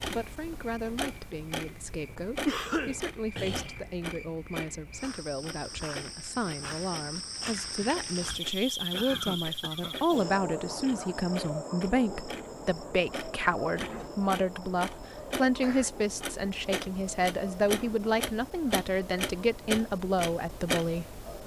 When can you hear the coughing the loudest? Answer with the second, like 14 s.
3 s.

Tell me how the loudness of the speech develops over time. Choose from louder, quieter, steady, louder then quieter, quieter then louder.
louder.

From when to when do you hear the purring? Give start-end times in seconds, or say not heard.
not heard.